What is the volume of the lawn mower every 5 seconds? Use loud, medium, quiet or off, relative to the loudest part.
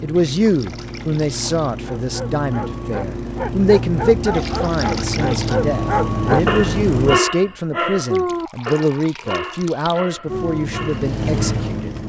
medium, loud, loud.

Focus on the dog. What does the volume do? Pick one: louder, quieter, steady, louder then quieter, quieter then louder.
louder then quieter.